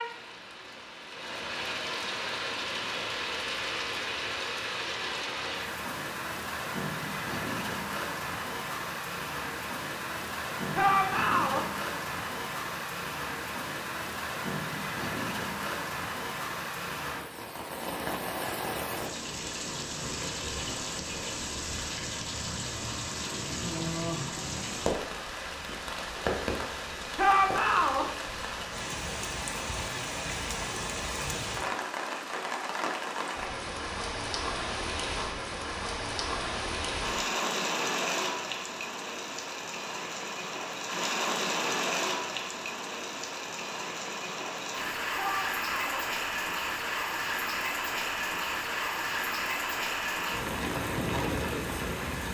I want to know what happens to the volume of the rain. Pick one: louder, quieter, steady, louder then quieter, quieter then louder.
steady.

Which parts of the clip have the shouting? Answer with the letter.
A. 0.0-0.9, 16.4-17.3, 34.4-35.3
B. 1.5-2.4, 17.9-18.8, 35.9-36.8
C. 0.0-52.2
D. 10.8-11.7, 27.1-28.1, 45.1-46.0
D.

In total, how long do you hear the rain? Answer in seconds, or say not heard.
52 s.